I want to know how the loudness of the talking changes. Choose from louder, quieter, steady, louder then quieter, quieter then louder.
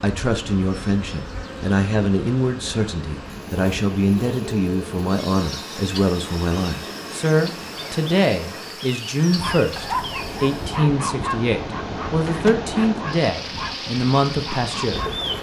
steady.